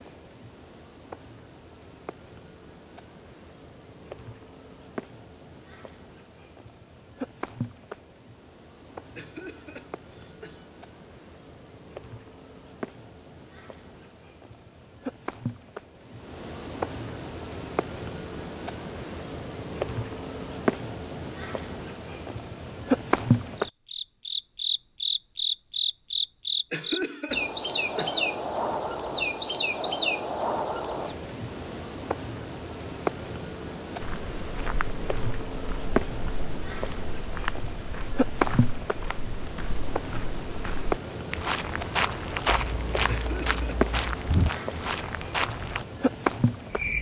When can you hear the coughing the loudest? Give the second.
27 s.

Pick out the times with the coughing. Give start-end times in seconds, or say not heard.
9.2-10.7, 26.7-28.3, 43.0-43.9.